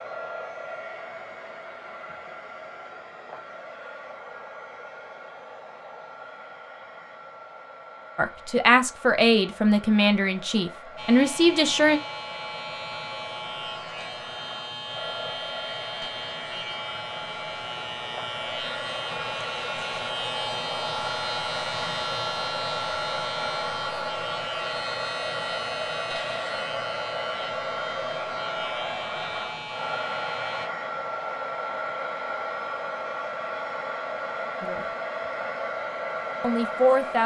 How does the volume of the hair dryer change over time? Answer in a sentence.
The volume of the hair dryer goes up.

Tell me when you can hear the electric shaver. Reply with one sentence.
You can hear the electric shaver from 10.9 to 30.7 s.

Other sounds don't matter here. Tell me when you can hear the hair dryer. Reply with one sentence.
You can hear the hair dryer from 0.0 to 37.2 s.